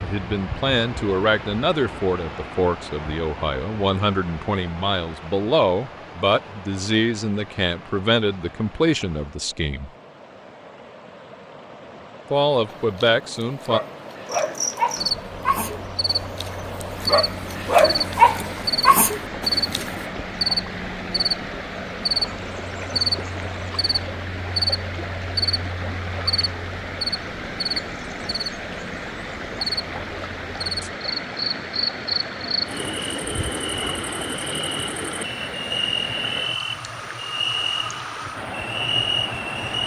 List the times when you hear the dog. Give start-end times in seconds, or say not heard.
12.7-20.1.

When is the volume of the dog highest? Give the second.
18 s.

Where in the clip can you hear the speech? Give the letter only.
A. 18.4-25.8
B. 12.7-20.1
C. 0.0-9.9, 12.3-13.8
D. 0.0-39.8
C.